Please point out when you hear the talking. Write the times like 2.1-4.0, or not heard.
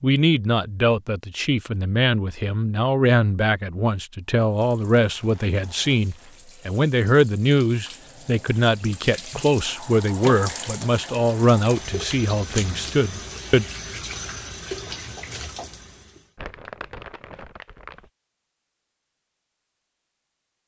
0.0-13.7.